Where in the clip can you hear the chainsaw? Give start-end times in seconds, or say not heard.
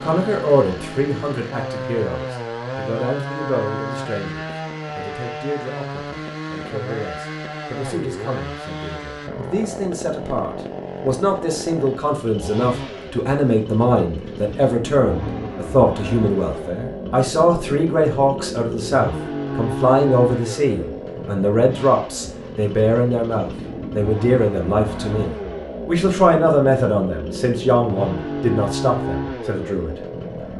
0.0-30.5.